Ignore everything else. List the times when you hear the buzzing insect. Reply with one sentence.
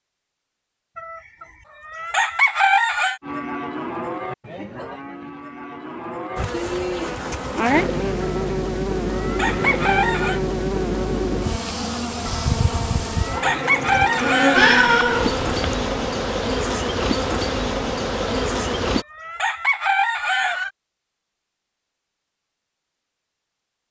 The buzzing insect can be heard from 6.3 to 19.1 s.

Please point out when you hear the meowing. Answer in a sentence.
You can hear the meowing from 14.5 to 15.6 s.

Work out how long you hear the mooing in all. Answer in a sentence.
The mooing can be heard for 4 seconds in total.